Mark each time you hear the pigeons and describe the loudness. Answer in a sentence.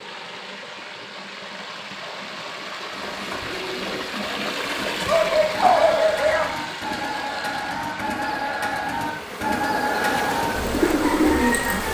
The pigeons can be heard from 2.9 to 11.9 s, getting louder.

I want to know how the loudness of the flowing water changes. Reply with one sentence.
The loudness of the flowing water goes up, then down.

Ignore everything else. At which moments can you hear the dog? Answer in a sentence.
You can hear the dog from 5.0 to 6.5 s.